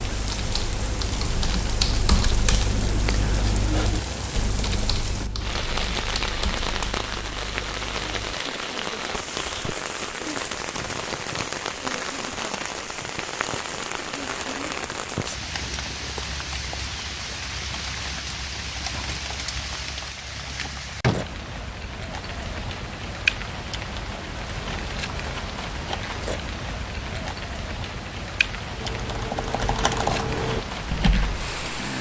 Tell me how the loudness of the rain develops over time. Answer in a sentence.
The volume of the rain stays about the same.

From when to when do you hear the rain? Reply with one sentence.
The rain can be heard from 0.0 to 31.9 s.